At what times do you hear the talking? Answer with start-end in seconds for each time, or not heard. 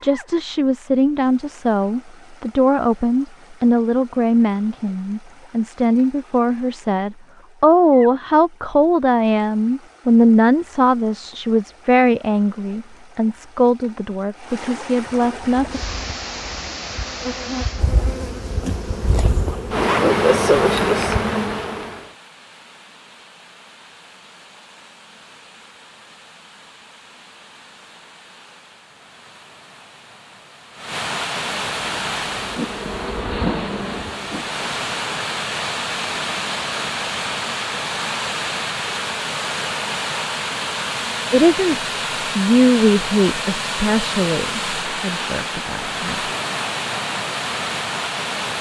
0.0-15.8, 41.3-46.1.